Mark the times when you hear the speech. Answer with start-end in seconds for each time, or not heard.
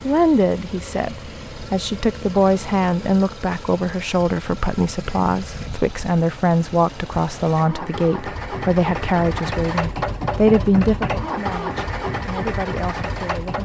0.0-13.6.